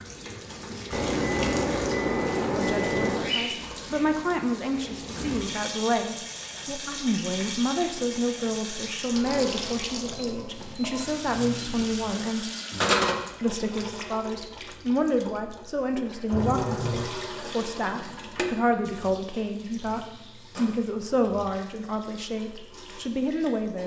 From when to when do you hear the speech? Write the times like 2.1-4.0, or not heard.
2.5-12.5, 13.4-23.8.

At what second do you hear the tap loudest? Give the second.
13 s.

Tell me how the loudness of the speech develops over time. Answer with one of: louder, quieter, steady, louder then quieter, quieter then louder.
steady.